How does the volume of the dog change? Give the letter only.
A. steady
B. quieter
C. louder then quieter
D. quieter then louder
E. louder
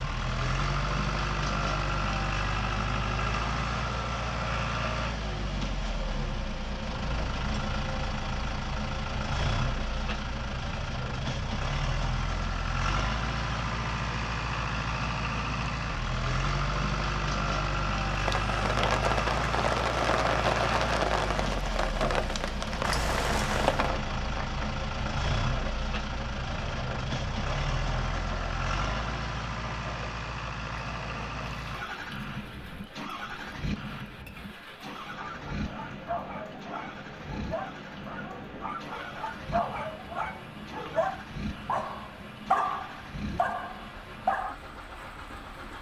E.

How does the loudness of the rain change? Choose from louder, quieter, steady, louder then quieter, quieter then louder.
quieter.